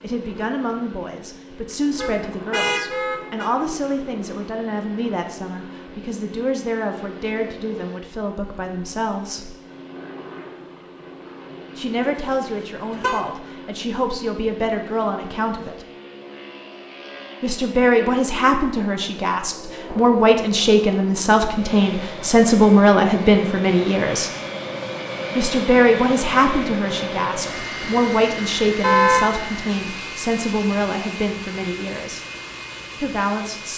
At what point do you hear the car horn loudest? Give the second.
29 s.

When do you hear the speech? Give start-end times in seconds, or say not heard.
0.0-9.6, 11.8-15.8, 17.4-24.3, 25.4-32.2, 33.0-33.7.